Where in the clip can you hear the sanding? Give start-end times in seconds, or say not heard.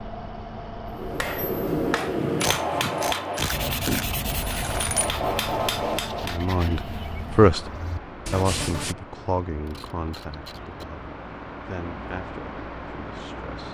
3.5-8.9.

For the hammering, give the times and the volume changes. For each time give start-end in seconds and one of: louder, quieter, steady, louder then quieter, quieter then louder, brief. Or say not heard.
0.9-6.5 quieter then louder.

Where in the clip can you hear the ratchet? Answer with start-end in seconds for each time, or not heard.
2.4-5.2, 9.2-10.8.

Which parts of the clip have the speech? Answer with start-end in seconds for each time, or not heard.
6.2-7.7, 8.3-13.6.